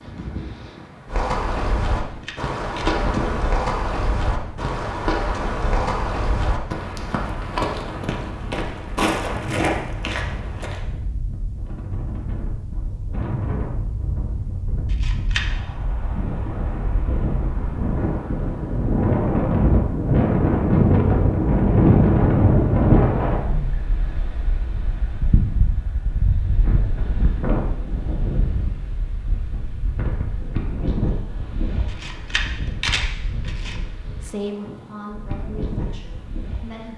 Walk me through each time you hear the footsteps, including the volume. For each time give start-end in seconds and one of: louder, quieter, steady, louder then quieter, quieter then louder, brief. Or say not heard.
1.1-10.8 steady.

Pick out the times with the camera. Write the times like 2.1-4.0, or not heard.
2.0-3.0, 14.9-15.4, 31.9-33.8.